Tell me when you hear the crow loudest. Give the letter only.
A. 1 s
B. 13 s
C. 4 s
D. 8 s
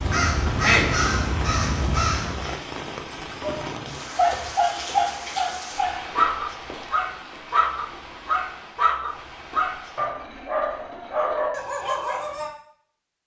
A.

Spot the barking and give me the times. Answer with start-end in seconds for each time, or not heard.
3.4-12.5.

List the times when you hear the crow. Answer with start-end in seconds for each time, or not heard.
0.0-2.5.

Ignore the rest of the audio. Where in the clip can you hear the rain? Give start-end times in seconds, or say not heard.
0.0-10.1.